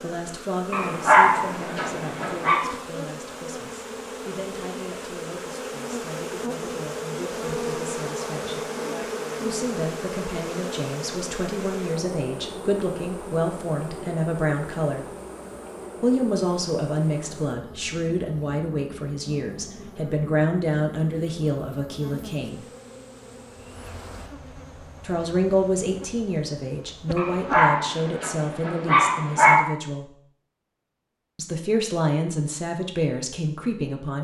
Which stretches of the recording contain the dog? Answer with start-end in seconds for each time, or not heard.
0.7-2.6, 27.1-29.6.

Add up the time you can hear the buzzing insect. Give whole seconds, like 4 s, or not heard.
28 s.